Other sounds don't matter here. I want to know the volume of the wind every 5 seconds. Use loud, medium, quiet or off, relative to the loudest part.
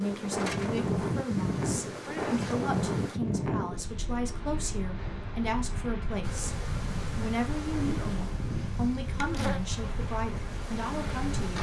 loud, medium, medium.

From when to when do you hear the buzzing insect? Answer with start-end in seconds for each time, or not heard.
0.0-3.2, 6.2-11.5.